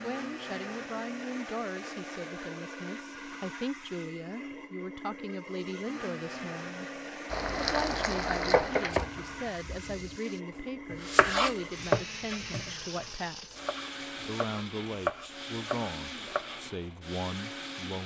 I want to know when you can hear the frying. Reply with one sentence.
The frying can be heard from 7.3 to 10.4 s.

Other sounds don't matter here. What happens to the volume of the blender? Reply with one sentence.
The volume of the blender stays about the same.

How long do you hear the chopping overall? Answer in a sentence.
You can hear the chopping for 7 seconds altogether.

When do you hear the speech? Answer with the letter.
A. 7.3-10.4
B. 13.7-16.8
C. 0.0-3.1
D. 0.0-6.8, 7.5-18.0
D.